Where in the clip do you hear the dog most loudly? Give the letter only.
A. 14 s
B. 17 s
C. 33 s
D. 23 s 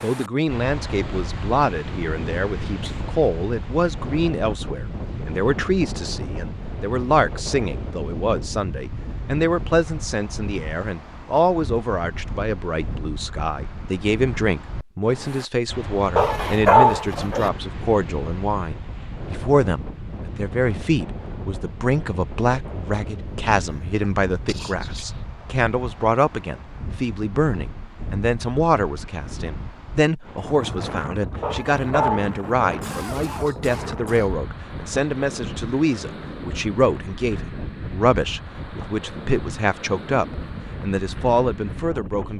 B.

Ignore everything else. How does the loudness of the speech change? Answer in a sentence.
The loudness of the speech stays about the same.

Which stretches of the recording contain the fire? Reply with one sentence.
You can't hear the fire here.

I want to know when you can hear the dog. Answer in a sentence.
You can hear the dog from 16.1 to 17.5 s and from 31.4 to 32.6 s.